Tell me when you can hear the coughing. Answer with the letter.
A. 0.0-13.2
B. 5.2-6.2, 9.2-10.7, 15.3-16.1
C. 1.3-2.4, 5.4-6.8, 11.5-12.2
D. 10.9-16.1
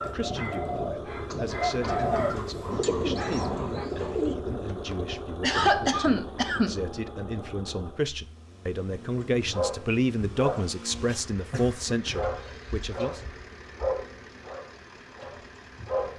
C.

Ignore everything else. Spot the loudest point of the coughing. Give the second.
6 s.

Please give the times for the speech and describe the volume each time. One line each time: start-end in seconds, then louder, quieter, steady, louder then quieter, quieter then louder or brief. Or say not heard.
0.0-13.2 louder.